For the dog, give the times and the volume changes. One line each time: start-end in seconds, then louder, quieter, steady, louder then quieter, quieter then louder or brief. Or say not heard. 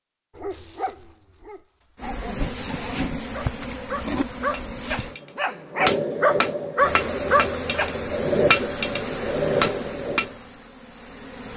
0.3-8.0 louder.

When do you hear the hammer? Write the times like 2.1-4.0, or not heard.
4.4-10.3.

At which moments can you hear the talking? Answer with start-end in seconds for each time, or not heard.
not heard.